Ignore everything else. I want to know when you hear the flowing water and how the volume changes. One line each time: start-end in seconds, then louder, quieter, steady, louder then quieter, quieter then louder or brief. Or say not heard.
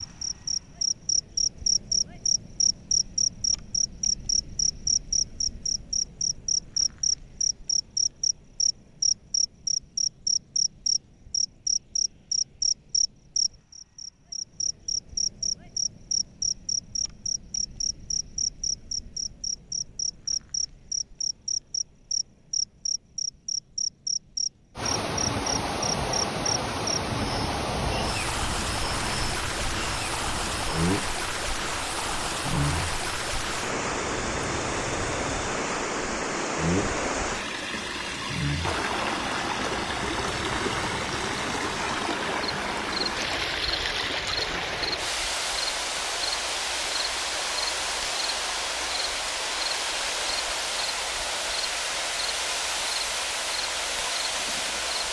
24.8-55.0 steady.